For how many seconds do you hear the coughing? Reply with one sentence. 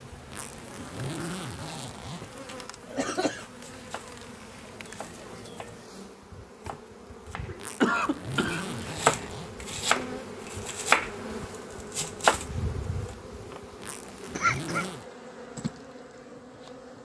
The coughing can be heard for 4 seconds in total.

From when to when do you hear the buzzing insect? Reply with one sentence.
You can hear the buzzing insect from 0.0 to 16.9 s.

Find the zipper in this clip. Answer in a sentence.
The zipper can be heard from 0.2 to 2.2 s, from 7.5 to 9.6 s and from 13.8 to 15.1 s.